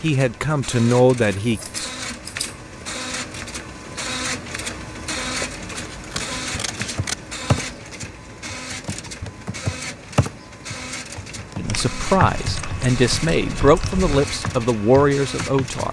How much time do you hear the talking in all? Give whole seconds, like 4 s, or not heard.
6 s.